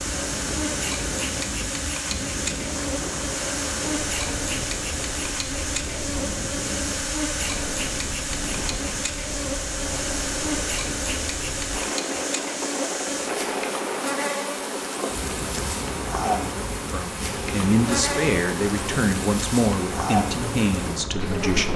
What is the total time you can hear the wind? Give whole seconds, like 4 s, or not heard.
22 s.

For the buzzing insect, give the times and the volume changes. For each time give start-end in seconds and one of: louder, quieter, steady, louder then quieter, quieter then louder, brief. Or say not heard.
0.0-21.7 steady.